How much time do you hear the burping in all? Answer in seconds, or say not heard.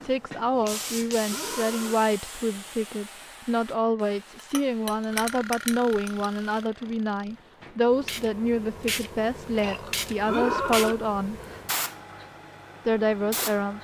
5 s.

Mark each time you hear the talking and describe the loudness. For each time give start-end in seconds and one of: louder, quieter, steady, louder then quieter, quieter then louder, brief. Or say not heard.
0.0-11.4 steady
12.8-13.7 brief.